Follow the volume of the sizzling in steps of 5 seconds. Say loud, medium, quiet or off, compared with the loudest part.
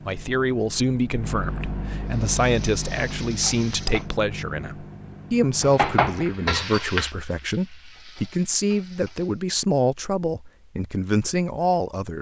medium, loud, off.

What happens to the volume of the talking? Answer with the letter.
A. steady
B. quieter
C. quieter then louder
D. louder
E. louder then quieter
A.